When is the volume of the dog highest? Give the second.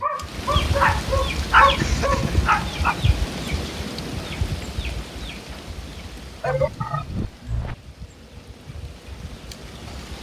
2 s.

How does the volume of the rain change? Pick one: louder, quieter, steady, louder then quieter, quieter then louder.
quieter.